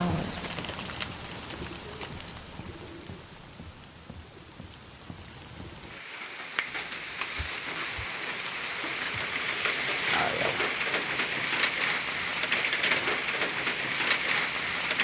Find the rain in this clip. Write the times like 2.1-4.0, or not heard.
0.0-15.0.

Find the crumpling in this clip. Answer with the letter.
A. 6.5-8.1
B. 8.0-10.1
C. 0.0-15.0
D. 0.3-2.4
D.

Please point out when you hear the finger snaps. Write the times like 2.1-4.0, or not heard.
6.5-8.1.